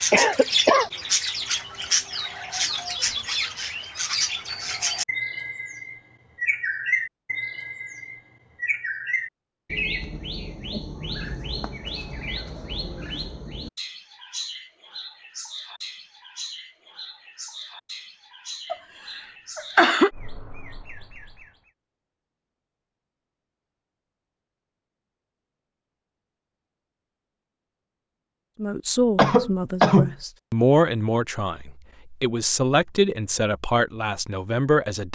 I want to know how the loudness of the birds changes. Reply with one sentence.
The volume of the birds goes down.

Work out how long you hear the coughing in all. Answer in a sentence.
The coughing can be heard for 3 seconds in total.